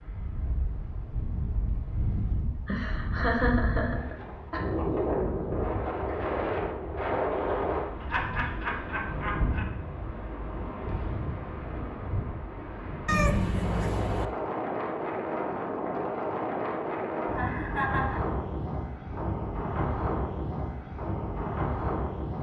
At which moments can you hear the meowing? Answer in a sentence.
You can hear the meowing from 13.1 to 14.2 s.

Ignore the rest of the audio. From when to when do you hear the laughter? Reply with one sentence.
You can hear the laughter from 2.6 to 4.6 s, from 8.0 to 9.7 s and from 17.3 to 18.2 s.